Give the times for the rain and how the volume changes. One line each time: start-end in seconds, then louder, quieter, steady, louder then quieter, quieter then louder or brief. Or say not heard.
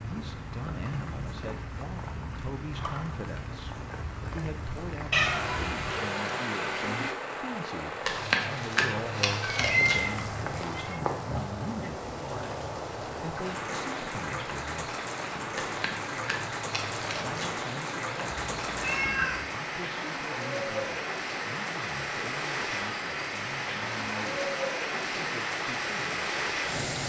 0.0-27.0 louder.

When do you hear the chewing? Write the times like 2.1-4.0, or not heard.
8.1-10.8, 15.6-17.6.